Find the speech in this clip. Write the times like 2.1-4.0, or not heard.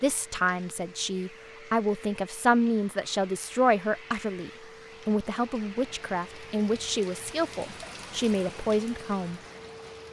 0.0-9.4.